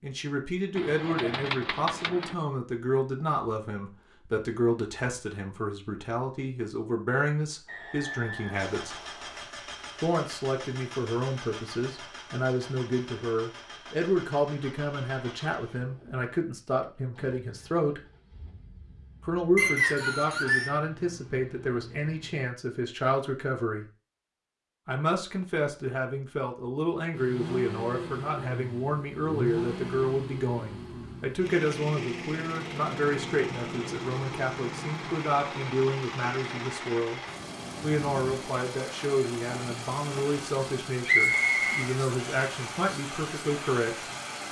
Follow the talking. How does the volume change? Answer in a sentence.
The volume of the talking stays about the same.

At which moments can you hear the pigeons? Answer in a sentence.
The pigeons can be heard from 0.8 to 2.4 s.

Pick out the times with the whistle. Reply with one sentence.
You can hear the whistle from 7.7 to 9.4 s, from 19.6 to 20.8 s and from 41.0 to 41.6 s.